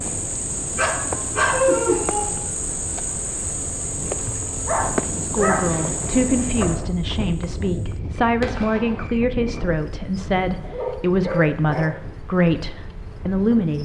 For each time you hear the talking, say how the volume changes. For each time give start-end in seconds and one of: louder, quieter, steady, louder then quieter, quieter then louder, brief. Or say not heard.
5.2-13.8 steady.